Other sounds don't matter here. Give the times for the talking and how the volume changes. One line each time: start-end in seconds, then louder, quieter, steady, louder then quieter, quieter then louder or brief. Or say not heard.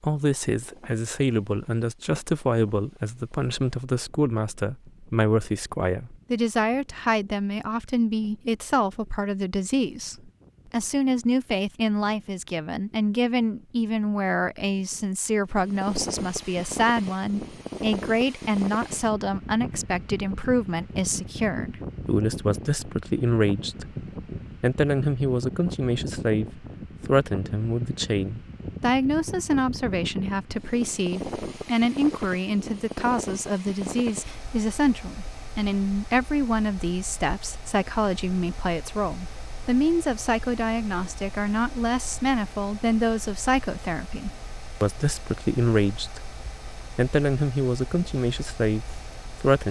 0.0-23.9 steady
24.6-46.3 steady
47.0-49.6 brief.